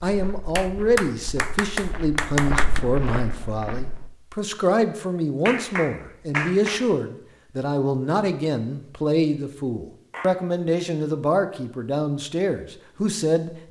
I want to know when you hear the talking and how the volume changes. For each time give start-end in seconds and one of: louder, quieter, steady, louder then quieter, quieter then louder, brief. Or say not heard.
0.0-13.6 steady.